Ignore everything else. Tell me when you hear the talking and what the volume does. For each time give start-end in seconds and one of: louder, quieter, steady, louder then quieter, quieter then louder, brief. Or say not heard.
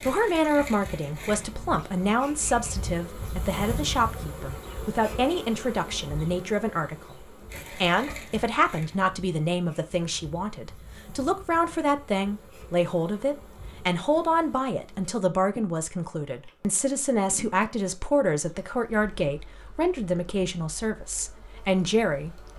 0.0-22.5 steady.